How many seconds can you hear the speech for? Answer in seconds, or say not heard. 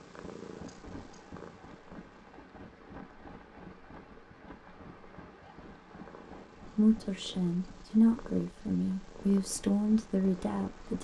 4 s.